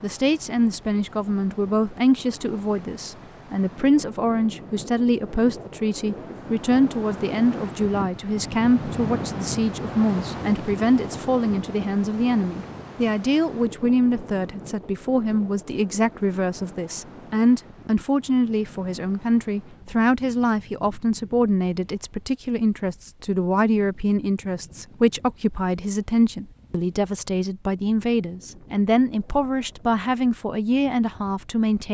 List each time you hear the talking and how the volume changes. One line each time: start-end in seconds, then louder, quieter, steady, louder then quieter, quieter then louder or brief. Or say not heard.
0.0-31.8 steady.